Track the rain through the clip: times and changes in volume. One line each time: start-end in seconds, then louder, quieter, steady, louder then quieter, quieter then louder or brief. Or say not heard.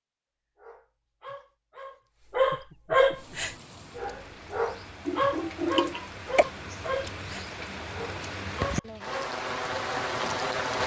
3.1-10.8 louder.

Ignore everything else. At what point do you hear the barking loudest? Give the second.
3 s.